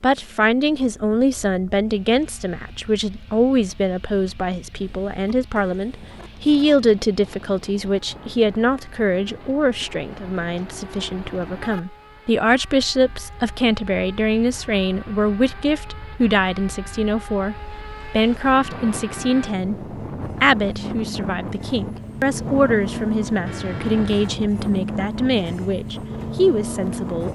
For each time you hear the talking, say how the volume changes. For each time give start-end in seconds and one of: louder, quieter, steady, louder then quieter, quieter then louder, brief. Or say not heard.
0.0-27.3 steady.